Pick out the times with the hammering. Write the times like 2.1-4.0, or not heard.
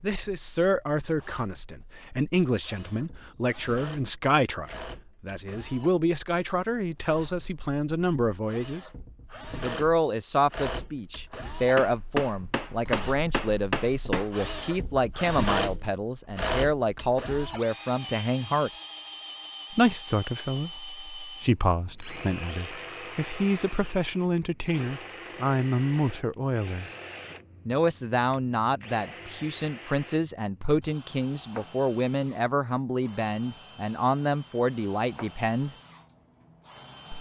11.8-14.3.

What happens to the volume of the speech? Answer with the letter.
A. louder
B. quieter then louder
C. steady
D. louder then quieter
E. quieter
C.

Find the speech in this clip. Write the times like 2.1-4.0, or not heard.
0.0-8.8, 9.6-18.7, 19.7-26.9, 27.6-35.8.